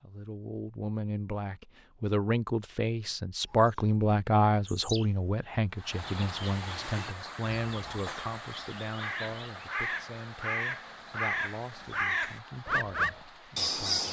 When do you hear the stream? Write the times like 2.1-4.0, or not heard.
5.7-13.8.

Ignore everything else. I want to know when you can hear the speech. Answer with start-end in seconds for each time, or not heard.
0.0-14.0.